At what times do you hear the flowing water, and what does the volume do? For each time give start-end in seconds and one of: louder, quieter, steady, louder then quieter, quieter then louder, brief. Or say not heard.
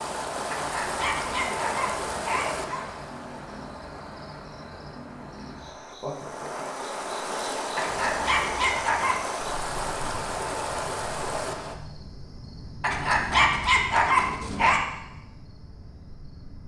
0.0-11.8 quieter then louder.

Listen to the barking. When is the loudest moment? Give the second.
14 s.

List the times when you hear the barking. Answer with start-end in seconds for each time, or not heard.
0.5-2.9, 7.8-9.2, 12.8-14.8.